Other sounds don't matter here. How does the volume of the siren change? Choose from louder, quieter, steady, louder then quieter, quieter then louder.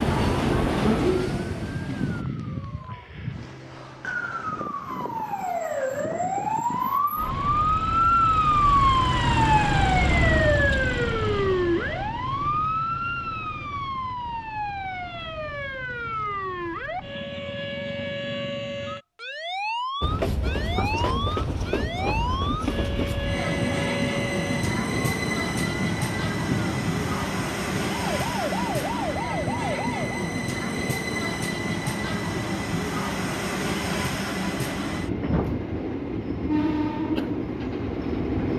louder then quieter.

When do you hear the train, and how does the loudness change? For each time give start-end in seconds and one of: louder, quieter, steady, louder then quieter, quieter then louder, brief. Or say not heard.
0.0-2.2 brief
20.0-38.5 steady.